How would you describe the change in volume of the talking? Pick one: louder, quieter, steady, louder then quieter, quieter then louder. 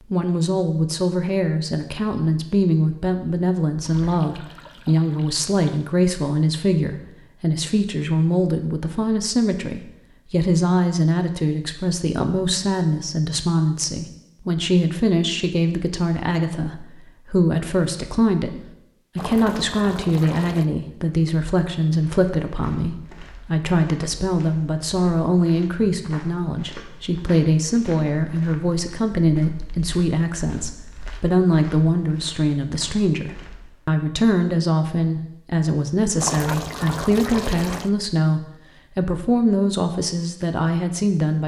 steady.